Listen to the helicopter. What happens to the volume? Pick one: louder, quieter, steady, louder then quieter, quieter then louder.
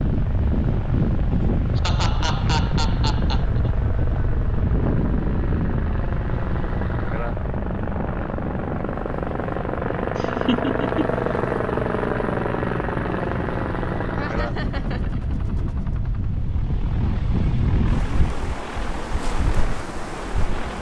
louder then quieter.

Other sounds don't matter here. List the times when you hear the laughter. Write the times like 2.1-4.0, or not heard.
1.3-3.7, 10.2-11.2, 14.2-15.2.